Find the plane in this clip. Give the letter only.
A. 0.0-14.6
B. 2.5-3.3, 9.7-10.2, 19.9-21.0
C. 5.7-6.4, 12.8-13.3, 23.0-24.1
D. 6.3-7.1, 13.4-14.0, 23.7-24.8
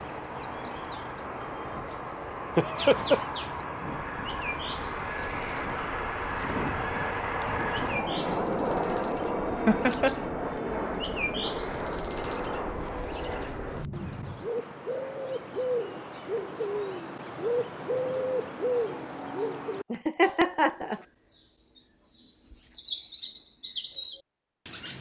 A.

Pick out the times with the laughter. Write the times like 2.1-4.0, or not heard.
2.5-3.3, 9.7-10.2, 19.9-21.0.